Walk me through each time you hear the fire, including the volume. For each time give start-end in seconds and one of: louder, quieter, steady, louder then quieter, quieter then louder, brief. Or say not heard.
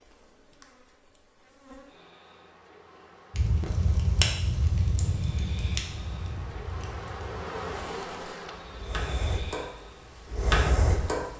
3.3-11.3 quieter then louder.